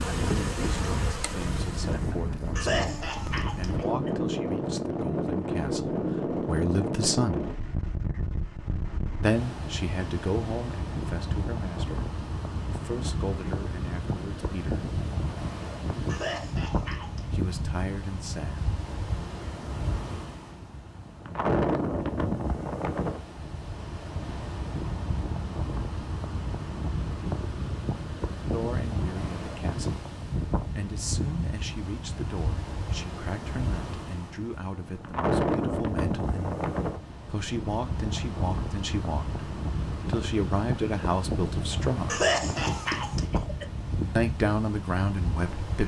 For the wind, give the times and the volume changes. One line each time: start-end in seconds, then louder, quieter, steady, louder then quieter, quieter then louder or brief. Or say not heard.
0.0-45.8 steady.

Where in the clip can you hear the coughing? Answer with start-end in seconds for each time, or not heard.
2.5-4.1, 16.1-17.4, 42.0-43.6.